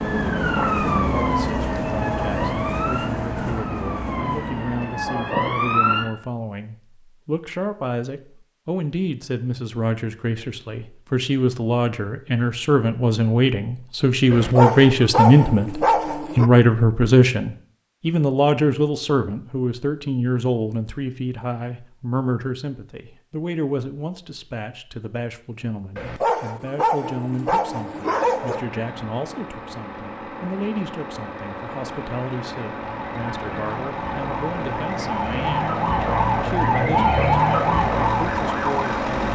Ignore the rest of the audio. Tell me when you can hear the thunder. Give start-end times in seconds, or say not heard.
not heard.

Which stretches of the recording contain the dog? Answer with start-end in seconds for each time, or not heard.
14.3-16.5, 25.9-28.6.